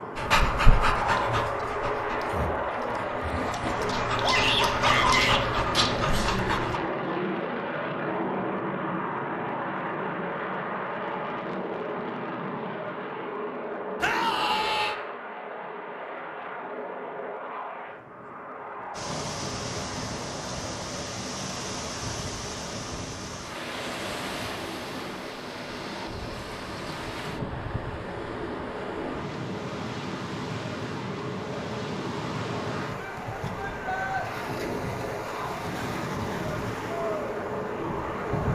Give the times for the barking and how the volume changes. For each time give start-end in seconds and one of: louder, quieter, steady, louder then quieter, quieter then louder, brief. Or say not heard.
0.1-6.8 quieter then louder.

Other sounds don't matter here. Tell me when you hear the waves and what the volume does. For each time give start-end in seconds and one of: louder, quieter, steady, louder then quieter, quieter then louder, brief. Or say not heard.
18.9-38.5 steady.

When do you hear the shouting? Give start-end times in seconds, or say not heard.
4.2-5.4, 14.0-14.9, 33.0-34.2.